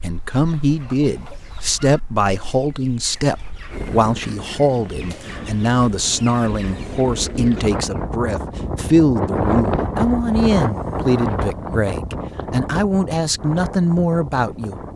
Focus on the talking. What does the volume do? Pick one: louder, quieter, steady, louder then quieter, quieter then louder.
steady.